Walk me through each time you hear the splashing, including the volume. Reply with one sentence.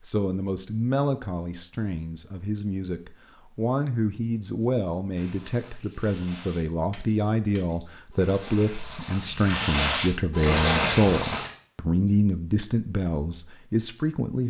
You can hear the splashing from 5.2 to 11.5 s, getting louder.